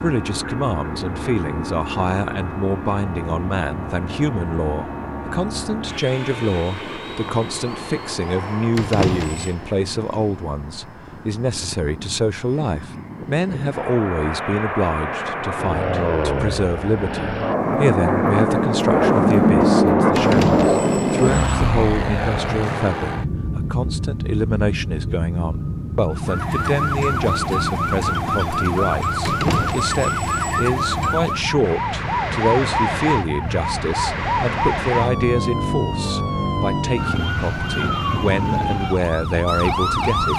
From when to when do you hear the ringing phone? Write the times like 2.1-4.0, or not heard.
8.7-9.6, 20.1-21.6, 29.2-30.6.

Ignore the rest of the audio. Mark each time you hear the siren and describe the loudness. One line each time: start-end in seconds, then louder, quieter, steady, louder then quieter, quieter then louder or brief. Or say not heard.
26.1-40.3 steady.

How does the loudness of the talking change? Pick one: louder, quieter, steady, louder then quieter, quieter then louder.
steady.